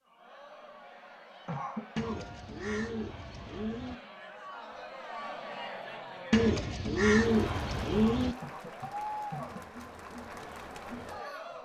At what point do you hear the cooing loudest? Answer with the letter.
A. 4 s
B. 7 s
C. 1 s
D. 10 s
B.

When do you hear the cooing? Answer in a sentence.
You can hear the cooing from 1.9 to 4.0 s and from 6.3 to 8.3 s.